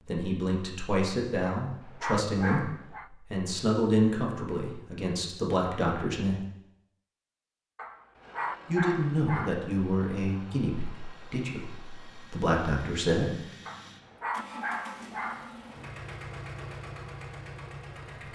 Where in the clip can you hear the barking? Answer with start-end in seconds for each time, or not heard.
1.6-3.1, 7.8-9.6, 13.7-15.8.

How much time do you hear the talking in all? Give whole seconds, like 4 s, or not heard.
11 s.